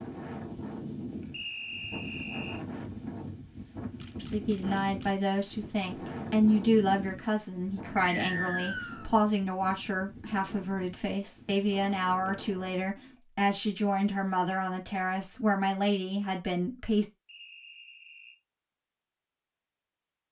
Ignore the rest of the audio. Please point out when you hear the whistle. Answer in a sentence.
The whistle can be heard from 1.3 to 2.6 s, from 8.0 to 9.1 s and from 17.2 to 18.4 s.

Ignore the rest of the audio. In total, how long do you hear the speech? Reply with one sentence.
You can hear the speech for 13 seconds altogether.